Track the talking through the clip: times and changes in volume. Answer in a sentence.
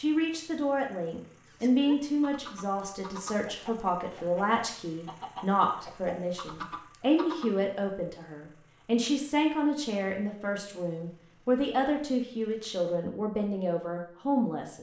The talking can be heard from 0.0 to 14.7 s, at a steady volume.